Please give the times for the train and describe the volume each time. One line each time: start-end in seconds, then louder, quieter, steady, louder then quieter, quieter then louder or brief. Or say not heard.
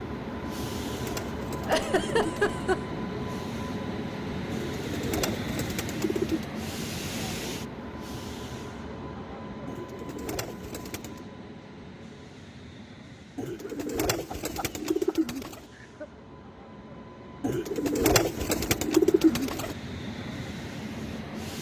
0.0-21.5 quieter then louder.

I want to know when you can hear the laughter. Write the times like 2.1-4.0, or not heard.
1.6-2.8, 13.6-16.1.